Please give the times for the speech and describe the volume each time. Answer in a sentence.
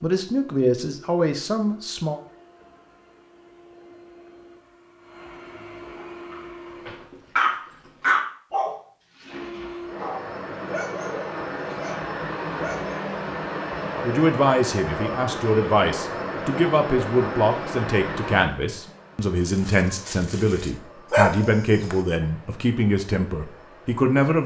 You can hear the speech briefly from 0.0 to 2.2 s; and from 14.1 to 24.4 s, at a steady volume.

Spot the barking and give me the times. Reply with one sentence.
You can hear the barking from 6.0 to 12.9 s and from 19.4 to 21.9 s.